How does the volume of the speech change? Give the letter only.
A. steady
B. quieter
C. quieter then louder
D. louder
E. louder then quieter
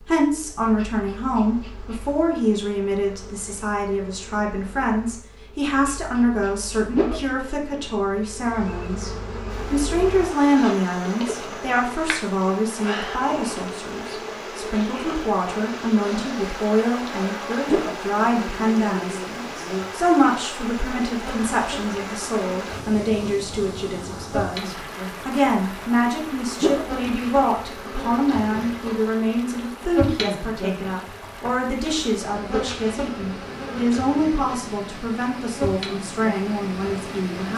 A.